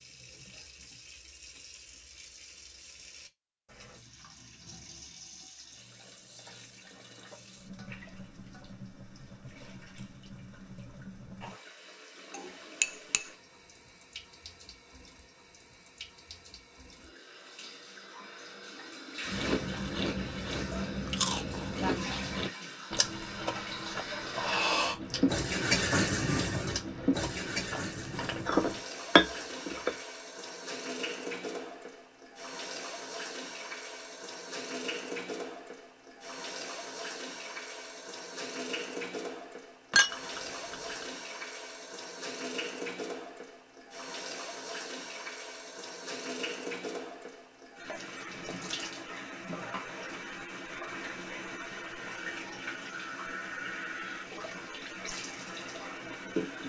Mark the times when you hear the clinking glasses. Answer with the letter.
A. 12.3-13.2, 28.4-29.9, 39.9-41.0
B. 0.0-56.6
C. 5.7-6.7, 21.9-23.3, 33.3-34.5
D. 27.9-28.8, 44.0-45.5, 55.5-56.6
A.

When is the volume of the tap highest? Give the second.
26 s.